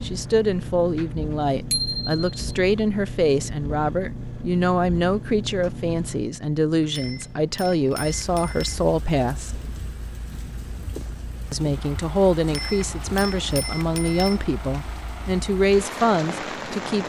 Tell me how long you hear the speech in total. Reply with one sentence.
The speech can be heard for 15 seconds in total.